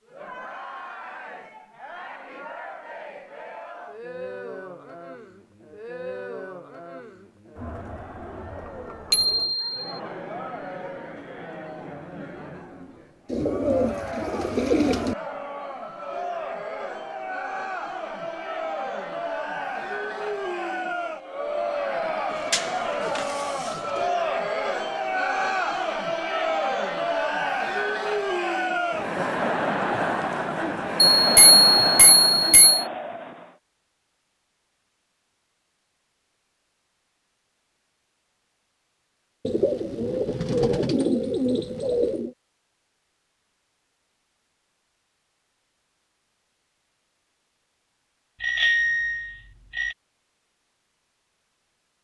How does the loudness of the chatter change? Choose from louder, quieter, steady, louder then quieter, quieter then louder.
louder.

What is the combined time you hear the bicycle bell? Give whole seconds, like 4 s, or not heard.
4 s.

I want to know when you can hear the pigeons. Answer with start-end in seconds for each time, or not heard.
13.2-15.2, 22.3-24.1, 39.5-42.4.